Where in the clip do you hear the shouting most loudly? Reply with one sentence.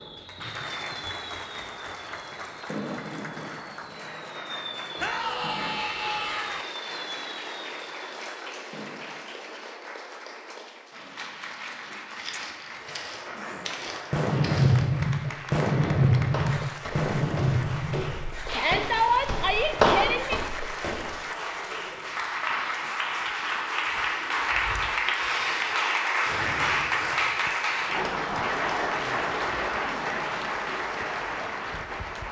The volume of the shouting peaks at 19 seconds.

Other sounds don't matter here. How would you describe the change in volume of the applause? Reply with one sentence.
The loudness of the applause goes up.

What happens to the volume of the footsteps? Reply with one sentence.
The volume of the footsteps goes up.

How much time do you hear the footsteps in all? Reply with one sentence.
You can hear the footsteps for 9 seconds altogether.